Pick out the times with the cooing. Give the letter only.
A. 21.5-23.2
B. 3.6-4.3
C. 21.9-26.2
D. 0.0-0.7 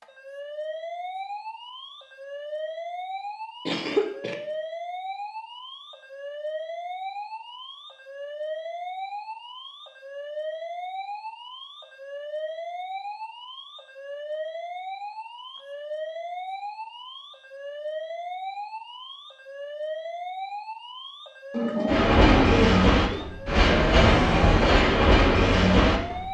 A.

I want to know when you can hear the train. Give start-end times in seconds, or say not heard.
21.9-26.2.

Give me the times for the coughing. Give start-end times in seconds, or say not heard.
3.6-4.3.